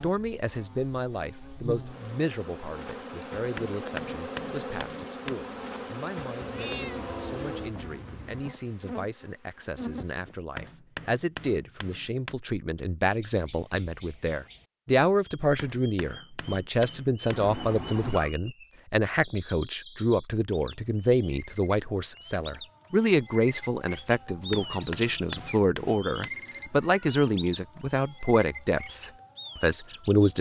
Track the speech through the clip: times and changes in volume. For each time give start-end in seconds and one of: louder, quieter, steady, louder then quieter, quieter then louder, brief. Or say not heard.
0.0-30.3 louder.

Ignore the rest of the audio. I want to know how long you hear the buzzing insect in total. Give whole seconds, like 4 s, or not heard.
10 s.